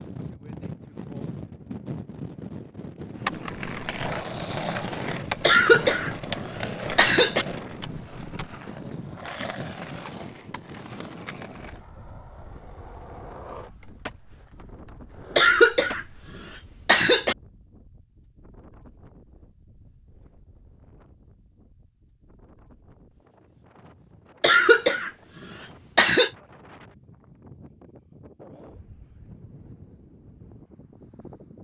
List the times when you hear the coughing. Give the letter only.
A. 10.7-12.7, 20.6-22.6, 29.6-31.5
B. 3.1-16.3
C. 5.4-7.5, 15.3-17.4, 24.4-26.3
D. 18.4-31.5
C.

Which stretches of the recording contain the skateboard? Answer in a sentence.
You can hear the skateboard from 3.1 to 16.3 s.